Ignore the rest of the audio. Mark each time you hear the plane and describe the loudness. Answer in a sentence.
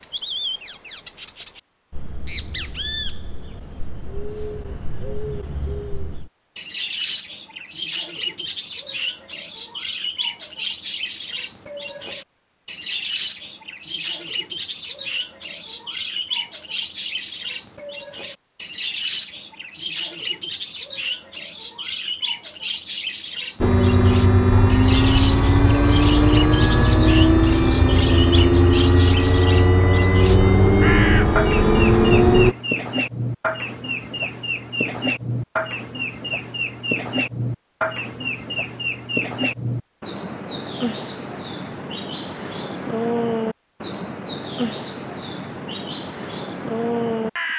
You can hear the plane from 23.6 to 32.5 s, at a steady volume.